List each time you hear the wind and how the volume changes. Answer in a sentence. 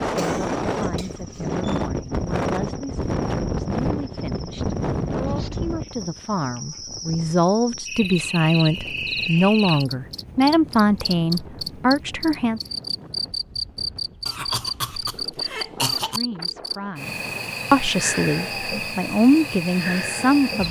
The wind can be heard from 0.0 to 17.6 s, getting quieter.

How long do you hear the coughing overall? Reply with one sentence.
The coughing can be heard for 4 seconds in total.